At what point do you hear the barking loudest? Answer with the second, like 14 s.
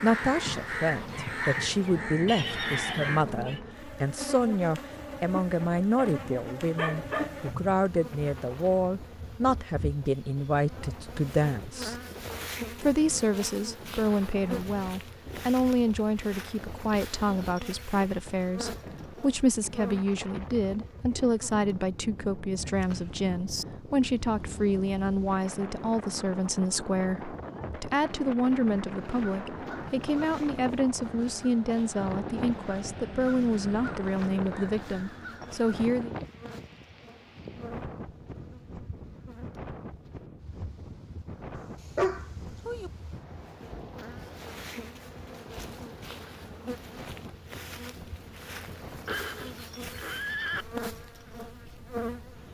42 s.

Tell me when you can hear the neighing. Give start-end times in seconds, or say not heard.
2.2-3.6, 22.6-23.6, 49.0-50.6.